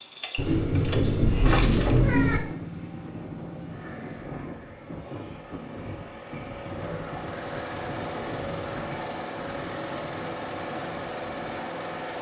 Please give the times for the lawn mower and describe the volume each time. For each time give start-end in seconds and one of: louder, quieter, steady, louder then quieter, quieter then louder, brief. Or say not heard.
0.0-12.1 quieter then louder.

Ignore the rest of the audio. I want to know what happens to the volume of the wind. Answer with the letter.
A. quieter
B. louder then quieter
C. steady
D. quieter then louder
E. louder
C.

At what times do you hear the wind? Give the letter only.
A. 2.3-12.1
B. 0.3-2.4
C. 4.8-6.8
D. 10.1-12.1
A.